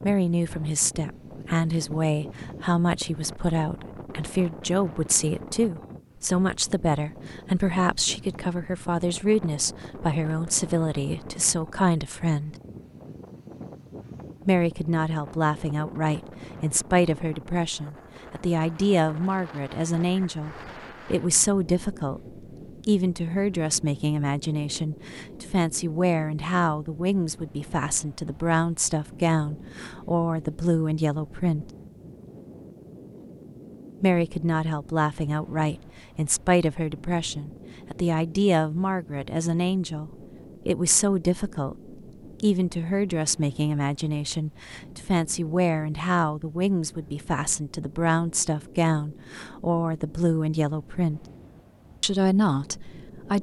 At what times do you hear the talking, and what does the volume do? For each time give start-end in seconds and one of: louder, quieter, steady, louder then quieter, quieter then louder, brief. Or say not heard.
0.0-12.6 steady
14.4-31.7 steady
34.0-51.2 steady
52.0-53.3 brief.